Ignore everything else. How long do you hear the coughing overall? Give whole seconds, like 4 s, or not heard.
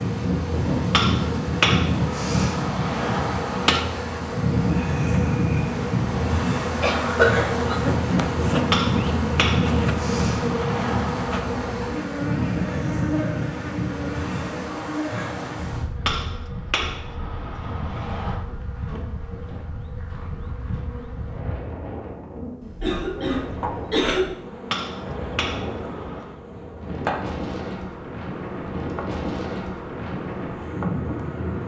3 s.